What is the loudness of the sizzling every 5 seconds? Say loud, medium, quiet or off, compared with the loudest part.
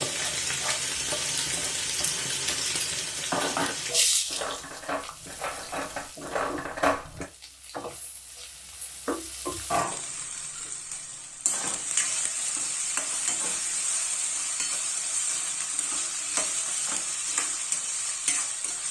loud, medium, loud, loud.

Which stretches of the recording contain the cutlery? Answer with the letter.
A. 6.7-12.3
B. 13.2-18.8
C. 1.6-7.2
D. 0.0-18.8
C.